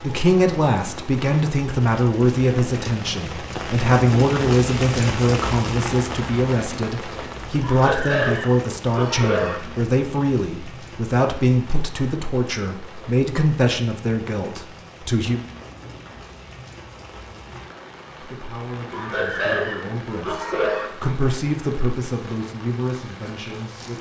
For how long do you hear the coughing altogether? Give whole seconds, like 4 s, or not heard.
4 s.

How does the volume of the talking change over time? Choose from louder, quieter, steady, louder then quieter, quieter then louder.
quieter.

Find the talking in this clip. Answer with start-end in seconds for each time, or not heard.
0.0-15.4, 18.1-23.9.